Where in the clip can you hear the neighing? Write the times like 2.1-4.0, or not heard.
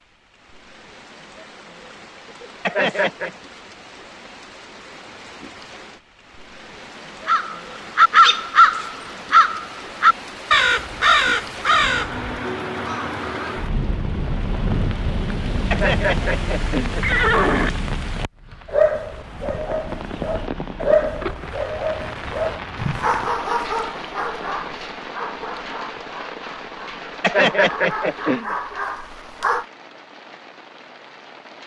2.6-3.3, 15.7-17.7, 27.2-28.6.